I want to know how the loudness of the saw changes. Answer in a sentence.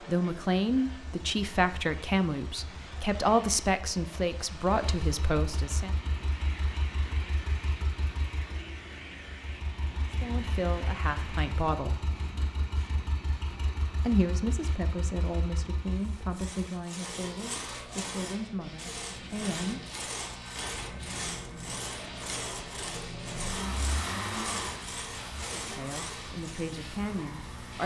The loudness of the saw stays about the same.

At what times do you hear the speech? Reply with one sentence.
The speech can be heard from 0.1 to 5.9 s, from 10.2 to 12.0 s, from 14.0 to 19.9 s and from 25.6 to 27.8 s.